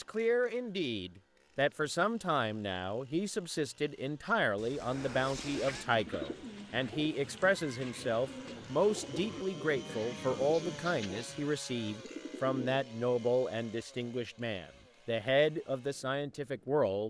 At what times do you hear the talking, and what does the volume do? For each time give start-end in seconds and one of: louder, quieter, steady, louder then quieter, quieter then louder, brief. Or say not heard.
0.0-17.0 steady.